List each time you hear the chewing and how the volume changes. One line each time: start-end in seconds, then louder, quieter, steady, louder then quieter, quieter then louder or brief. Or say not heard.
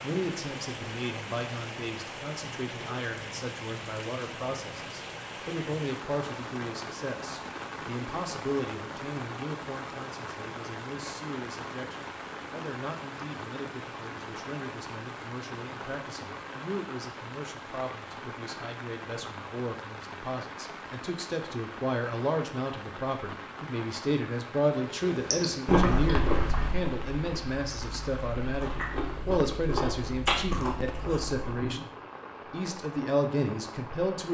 25.1-31.9 quieter then louder.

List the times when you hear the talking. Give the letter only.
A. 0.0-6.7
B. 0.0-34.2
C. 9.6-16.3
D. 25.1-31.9
B.